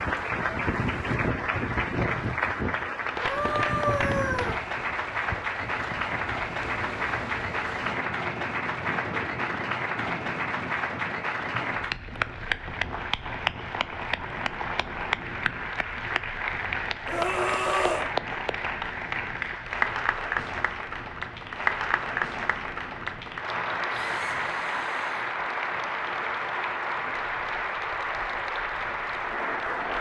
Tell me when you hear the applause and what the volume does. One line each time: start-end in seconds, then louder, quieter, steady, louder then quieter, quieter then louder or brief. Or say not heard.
0.0-29.9 steady.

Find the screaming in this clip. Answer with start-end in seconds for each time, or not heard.
3.2-4.5, 17.1-18.1, 23.9-25.4.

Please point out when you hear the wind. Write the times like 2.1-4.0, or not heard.
0.0-29.9.